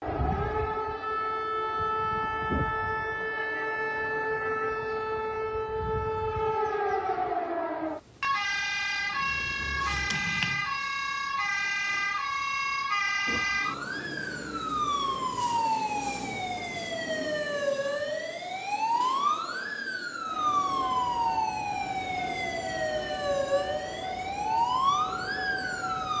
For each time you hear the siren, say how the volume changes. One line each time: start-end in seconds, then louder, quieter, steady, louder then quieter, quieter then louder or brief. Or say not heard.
0.0-26.1 steady.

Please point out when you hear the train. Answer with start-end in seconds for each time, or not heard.
20.2-26.1.